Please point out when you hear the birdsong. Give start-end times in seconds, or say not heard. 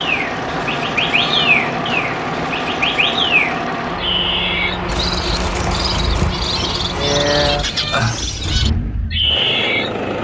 0.0-9.9.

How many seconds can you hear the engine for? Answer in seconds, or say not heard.
10 s.